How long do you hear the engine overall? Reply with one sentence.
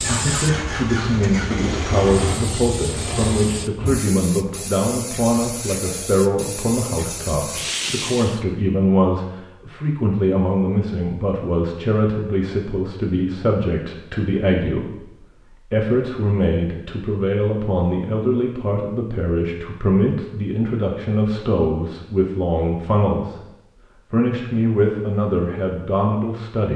The engine can be heard for 4 seconds in total.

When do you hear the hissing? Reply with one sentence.
The hissing can be heard from 0.0 to 8.4 s.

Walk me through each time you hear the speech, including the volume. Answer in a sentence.
You can hear the speech from 0.0 to 23.5 s, at a steady volume; and briefly from 24.1 to 26.7 s.